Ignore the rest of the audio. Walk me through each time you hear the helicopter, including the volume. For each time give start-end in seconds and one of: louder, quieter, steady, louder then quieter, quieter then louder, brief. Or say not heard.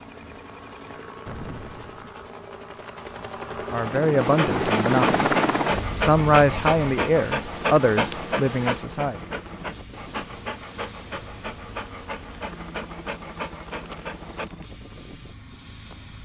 0.0-16.1 louder then quieter.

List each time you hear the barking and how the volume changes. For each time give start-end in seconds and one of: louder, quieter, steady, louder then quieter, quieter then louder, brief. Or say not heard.
4.2-14.5 quieter.